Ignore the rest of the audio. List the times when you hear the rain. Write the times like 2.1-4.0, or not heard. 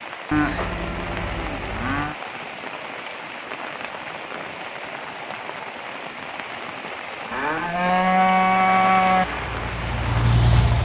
0.0-10.8.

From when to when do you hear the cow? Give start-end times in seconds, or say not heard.
0.3-2.1, 7.3-9.2.